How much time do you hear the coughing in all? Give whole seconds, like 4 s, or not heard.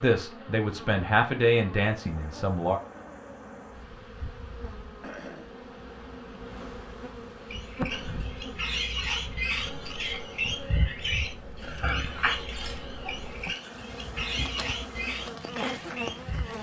2 s.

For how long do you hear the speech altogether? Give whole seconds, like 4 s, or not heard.
3 s.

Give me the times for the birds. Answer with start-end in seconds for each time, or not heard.
7.5-16.5.